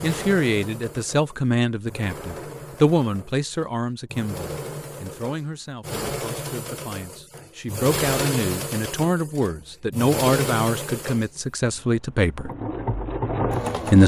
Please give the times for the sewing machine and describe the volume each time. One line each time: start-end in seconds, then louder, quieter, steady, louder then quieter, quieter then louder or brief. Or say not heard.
0.0-14.0 louder.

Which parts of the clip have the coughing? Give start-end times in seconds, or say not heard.
not heard.